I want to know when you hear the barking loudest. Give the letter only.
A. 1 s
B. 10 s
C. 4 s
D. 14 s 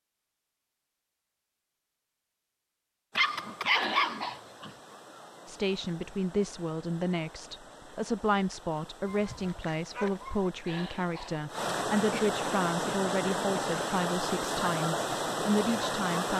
C.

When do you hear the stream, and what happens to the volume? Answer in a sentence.
The stream can be heard from 3.1 to 16.3 s, getting louder.